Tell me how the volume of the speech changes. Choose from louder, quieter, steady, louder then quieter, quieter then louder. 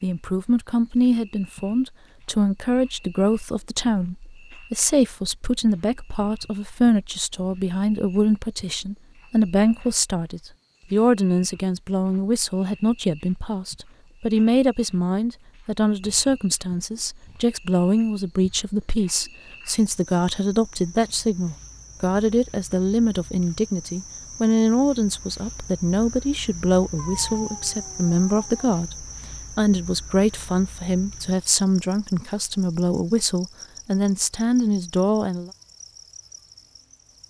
steady.